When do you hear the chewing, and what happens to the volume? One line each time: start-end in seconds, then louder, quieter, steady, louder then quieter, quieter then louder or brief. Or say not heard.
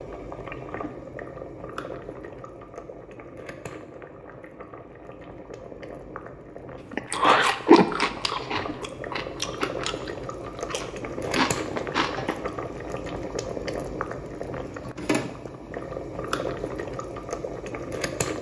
6.9-12.5 quieter then louder.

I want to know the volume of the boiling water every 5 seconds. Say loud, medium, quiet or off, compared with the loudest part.
medium, medium, loud, loud.